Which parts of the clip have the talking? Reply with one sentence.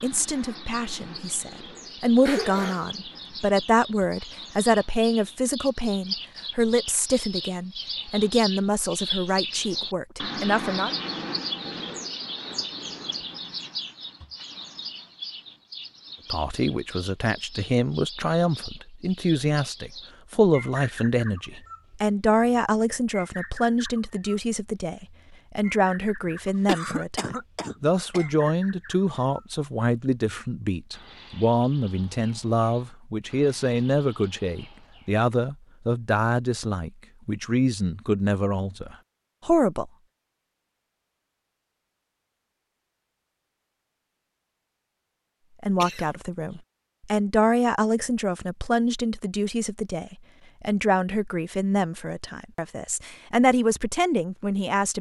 The talking can be heard from 0.0 to 10.9 s, from 16.3 to 39.9 s and from 45.6 to 54.9 s.